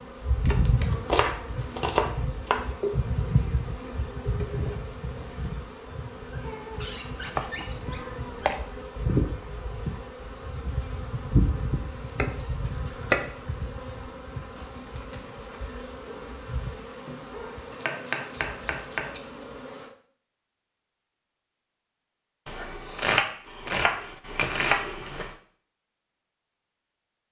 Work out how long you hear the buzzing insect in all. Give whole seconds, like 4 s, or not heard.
20 s.